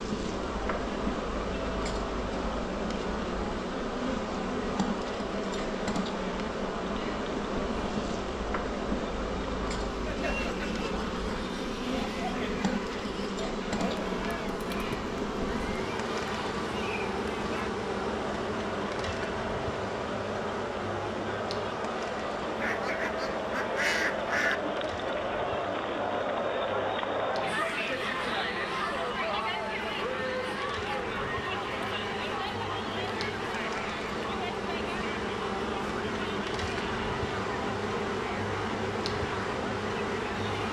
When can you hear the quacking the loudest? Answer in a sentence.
The volume of the quacking peaks at 24 seconds.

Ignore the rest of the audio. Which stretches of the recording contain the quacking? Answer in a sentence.
The quacking can be heard from 22.6 to 24.6 s.